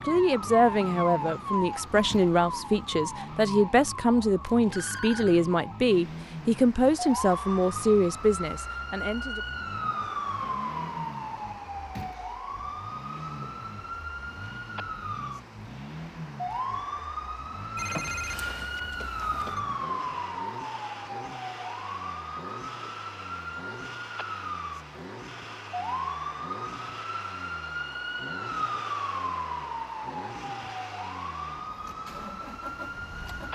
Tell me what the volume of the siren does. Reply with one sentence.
The loudness of the siren stays about the same.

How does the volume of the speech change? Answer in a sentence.
The volume of the speech stays about the same.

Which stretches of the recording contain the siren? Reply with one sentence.
The siren can be heard from 0.0 to 33.5 s.